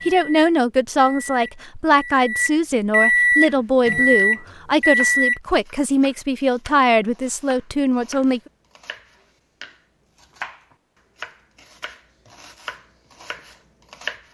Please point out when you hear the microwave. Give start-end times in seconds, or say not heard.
0.0-5.4.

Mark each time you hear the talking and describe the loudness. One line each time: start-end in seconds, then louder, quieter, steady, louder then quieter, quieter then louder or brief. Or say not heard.
0.1-8.4 steady.